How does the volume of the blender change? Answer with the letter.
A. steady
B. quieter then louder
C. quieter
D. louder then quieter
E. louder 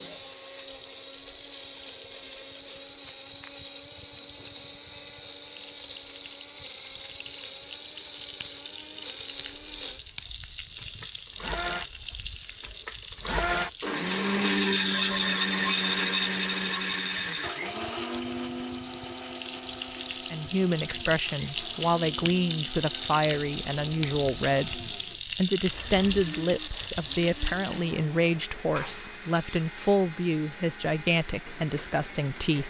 D.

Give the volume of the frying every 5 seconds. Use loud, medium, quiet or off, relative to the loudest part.
quiet, medium, medium, medium, loud, loud, quiet.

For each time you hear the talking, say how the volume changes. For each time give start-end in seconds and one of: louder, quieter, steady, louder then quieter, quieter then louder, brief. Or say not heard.
20.3-32.6 steady.